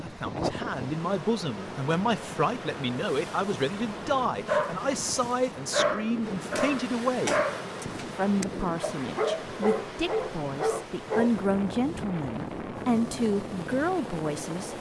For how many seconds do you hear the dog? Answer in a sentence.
You can hear the dog for 7 seconds altogether.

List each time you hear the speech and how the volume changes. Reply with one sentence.
The speech can be heard from 0.0 to 14.7 s, at a steady volume.